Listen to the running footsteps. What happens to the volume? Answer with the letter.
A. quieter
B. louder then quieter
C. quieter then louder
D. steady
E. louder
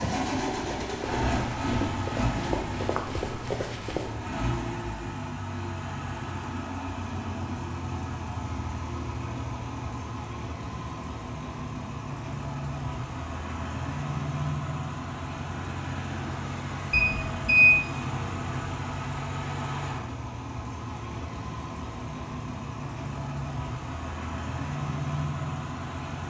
E.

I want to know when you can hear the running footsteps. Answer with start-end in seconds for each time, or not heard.
0.0-4.2.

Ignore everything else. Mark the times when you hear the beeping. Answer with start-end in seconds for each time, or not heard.
16.9-17.8.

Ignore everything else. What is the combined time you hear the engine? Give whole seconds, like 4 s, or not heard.
26 s.